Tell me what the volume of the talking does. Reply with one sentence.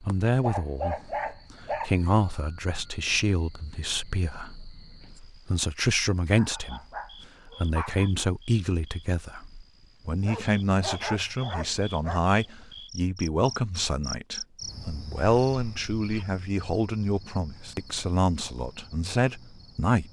The volume of the talking stays about the same.